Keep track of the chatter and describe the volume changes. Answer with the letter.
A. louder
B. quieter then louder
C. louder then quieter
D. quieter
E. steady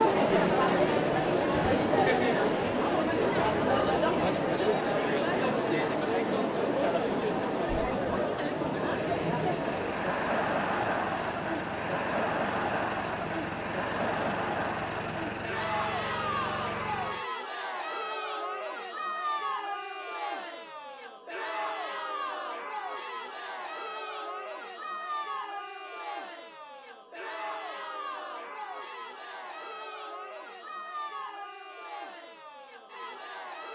D.